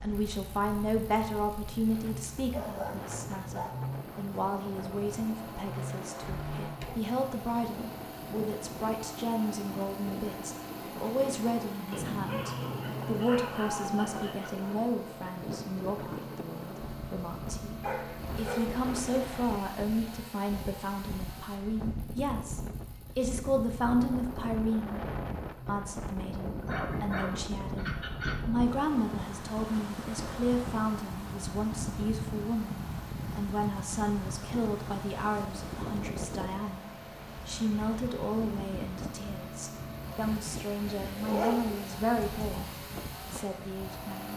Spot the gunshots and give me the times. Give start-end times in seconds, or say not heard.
not heard.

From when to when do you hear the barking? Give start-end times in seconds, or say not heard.
2.5-3.9, 11.9-14.8, 17.8-19.4, 26.6-28.4, 41.0-42.5.